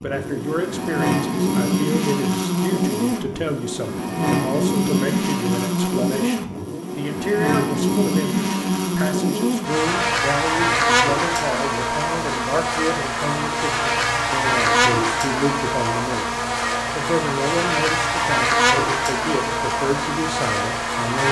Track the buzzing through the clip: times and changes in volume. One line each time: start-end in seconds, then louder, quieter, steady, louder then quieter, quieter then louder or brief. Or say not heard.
0.0-21.2 steady.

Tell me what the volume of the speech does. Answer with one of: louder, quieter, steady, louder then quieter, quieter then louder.
steady.